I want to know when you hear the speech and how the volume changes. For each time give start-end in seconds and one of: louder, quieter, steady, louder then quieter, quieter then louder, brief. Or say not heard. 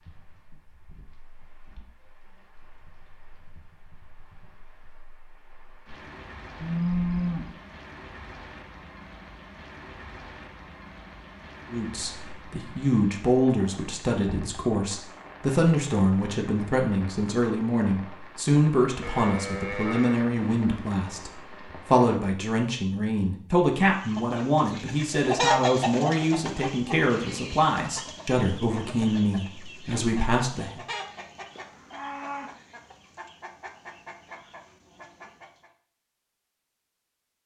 11.7-30.8 steady.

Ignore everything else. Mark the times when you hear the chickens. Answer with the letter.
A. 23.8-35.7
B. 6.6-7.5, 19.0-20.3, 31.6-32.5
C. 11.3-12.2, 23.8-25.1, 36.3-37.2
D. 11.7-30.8
A.